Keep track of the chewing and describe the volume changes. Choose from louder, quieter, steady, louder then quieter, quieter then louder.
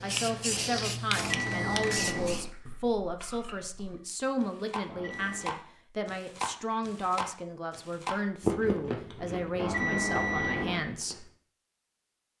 louder then quieter.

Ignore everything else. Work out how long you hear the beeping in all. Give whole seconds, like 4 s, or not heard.
3 s.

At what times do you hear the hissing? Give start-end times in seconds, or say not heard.
0.0-2.5.